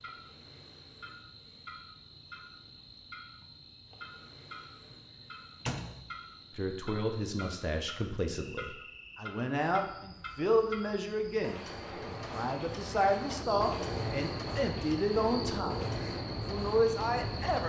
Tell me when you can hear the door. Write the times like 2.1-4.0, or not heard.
4.8-6.0.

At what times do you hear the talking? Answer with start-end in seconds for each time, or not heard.
6.5-17.6.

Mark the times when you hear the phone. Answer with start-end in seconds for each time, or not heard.
not heard.